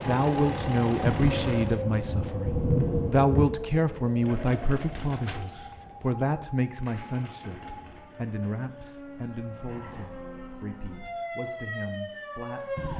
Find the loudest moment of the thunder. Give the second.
3 s.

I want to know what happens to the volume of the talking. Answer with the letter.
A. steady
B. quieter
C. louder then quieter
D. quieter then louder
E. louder
B.